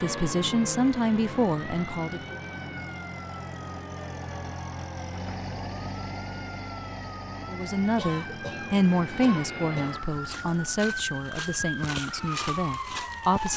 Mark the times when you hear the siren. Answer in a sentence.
You can hear the siren from 0.0 to 13.5 s.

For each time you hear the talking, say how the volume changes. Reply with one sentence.
You can hear the talking briefly from 0.0 to 2.4 s; and from 7.5 to 13.5 s, getting quieter.